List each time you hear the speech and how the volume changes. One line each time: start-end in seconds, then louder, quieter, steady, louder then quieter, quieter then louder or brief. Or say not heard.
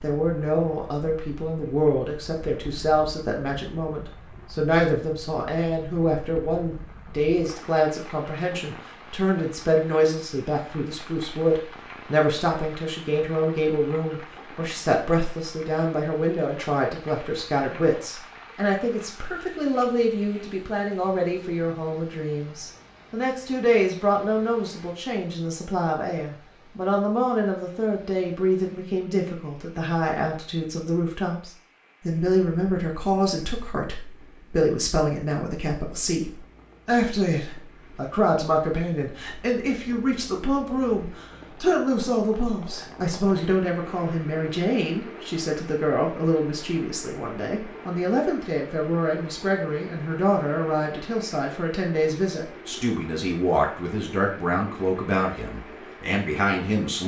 0.0-57.0 steady.